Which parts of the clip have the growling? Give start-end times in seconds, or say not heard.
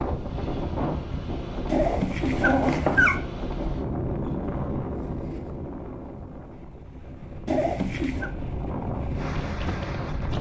1.6-3.2, 7.5-8.3.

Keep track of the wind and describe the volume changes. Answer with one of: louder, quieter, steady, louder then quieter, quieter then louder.
quieter then louder.